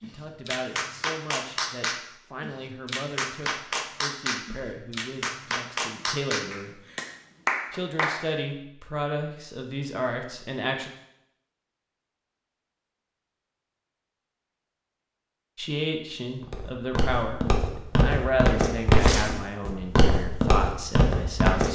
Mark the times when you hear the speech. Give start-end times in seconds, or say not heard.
0.0-6.8, 7.7-10.9, 15.6-21.7.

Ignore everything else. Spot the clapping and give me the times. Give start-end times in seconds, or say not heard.
0.0-8.2.